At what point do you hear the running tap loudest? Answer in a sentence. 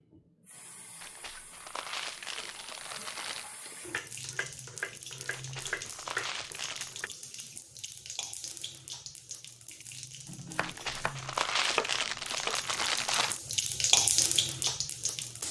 The volume of the running tap peaks at 14 seconds.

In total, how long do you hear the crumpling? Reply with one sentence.
The crumpling can be heard for 7 seconds in total.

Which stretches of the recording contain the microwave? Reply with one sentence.
You can't hear the microwave here.